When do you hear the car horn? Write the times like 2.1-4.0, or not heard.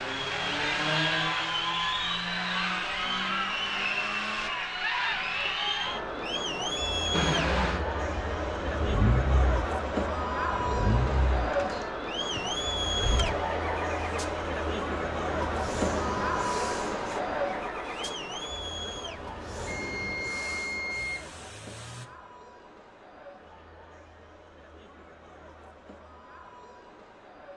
not heard.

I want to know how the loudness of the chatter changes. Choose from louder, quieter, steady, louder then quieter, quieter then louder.
quieter.